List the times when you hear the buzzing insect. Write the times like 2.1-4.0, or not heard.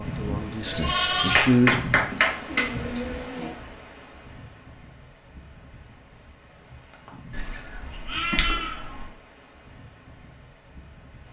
not heard.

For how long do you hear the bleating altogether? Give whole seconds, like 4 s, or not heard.
5 s.